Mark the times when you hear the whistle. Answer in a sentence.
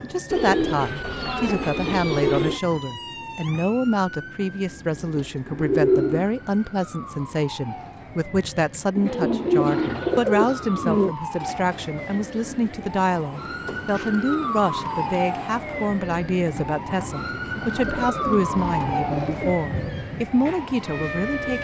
You can't hear the whistle here.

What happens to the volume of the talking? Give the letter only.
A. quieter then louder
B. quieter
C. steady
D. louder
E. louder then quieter
C.